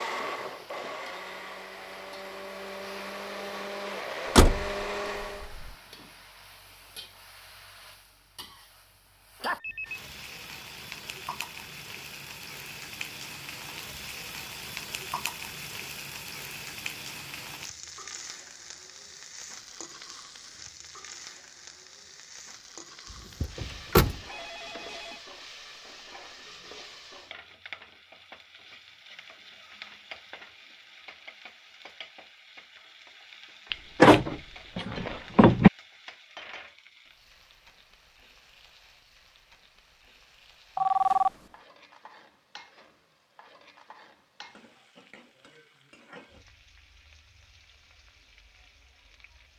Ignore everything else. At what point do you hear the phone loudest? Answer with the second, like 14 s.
41 s.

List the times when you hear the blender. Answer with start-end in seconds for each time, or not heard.
0.0-5.5.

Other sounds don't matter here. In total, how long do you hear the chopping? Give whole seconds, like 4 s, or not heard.
not heard.